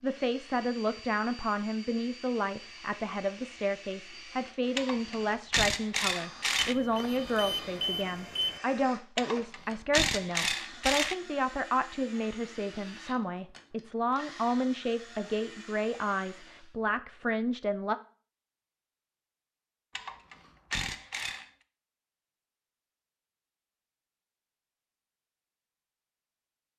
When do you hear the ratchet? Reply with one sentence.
The ratchet can be heard from 4.8 to 6.8 s, from 9.2 to 11.2 s and from 19.9 to 21.4 s.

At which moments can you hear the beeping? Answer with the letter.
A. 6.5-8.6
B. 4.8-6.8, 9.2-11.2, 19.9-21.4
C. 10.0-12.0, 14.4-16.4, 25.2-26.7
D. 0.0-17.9
A.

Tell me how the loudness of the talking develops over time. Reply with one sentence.
The loudness of the talking stays about the same.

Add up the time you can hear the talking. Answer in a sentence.
You can hear the talking for 18 seconds altogether.